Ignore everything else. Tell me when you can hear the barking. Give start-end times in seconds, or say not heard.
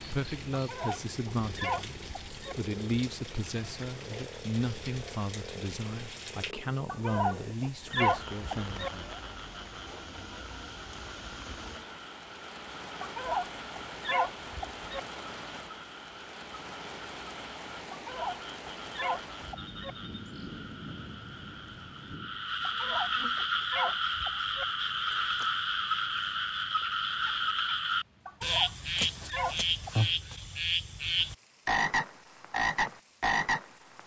0.5-2.5, 6.8-8.9, 13.0-15.0, 17.9-19.9, 22.6-24.6, 28.2-29.9.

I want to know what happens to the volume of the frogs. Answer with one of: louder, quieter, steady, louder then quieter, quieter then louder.
louder.